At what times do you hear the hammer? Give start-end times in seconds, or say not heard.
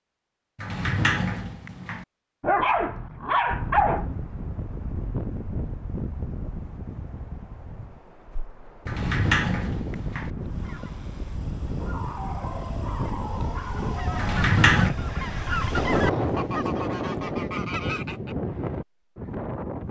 not heard.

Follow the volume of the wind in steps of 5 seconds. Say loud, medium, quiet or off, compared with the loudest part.
medium, medium, medium, loud.